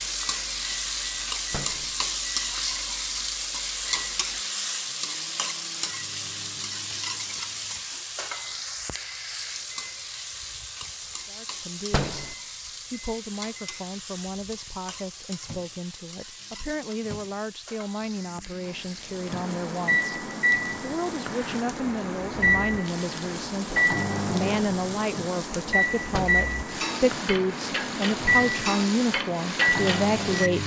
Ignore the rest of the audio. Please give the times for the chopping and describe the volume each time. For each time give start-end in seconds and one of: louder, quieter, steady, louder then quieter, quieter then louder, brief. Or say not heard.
not heard.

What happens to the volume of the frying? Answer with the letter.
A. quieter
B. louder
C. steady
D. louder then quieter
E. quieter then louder
E.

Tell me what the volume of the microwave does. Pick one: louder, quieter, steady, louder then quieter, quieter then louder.
louder.